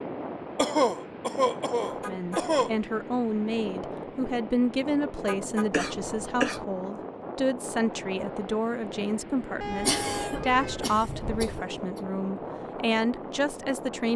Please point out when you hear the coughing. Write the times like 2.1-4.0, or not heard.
0.6-2.8, 5.7-6.7, 9.8-12.0.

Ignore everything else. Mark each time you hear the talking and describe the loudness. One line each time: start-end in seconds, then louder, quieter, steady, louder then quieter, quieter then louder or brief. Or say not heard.
1.9-14.1 steady.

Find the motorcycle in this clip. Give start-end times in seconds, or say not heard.
not heard.